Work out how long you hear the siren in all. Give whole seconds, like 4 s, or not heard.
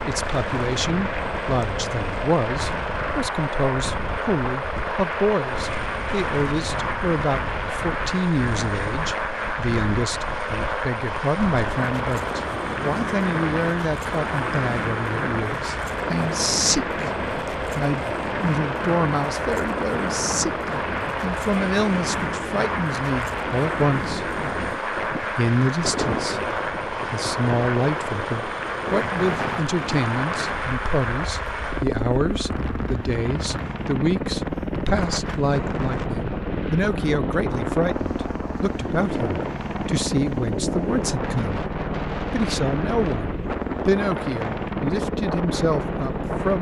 not heard.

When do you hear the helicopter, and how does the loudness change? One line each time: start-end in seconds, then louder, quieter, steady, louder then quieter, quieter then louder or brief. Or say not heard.
0.0-46.5 steady.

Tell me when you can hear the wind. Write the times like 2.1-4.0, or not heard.
0.0-46.5.